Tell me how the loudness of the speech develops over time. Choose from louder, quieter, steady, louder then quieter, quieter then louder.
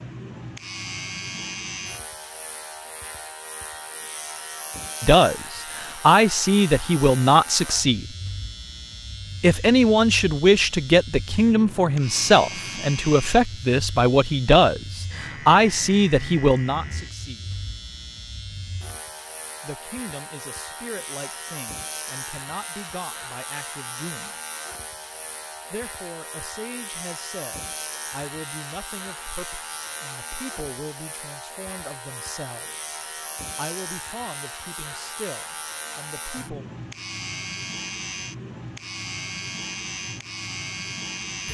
quieter.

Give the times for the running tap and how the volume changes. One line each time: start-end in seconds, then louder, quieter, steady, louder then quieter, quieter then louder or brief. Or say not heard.
not heard.